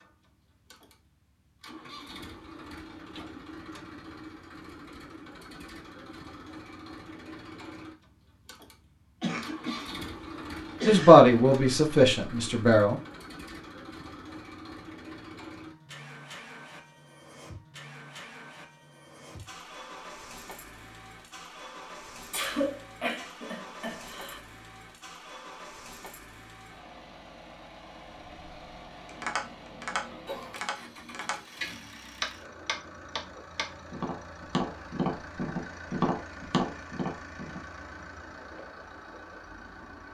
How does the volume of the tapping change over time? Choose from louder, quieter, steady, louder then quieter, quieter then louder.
louder.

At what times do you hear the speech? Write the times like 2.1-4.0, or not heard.
10.8-12.9.